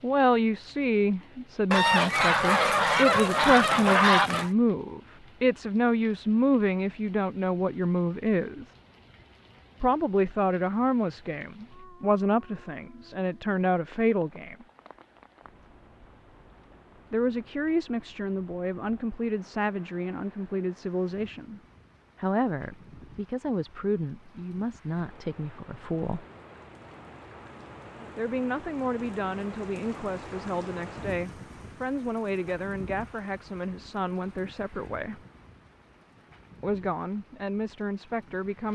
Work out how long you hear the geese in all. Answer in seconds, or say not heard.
3 s.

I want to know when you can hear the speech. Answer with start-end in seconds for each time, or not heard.
0.0-8.7, 9.8-14.7, 17.1-26.2, 28.1-35.2, 36.6-38.7.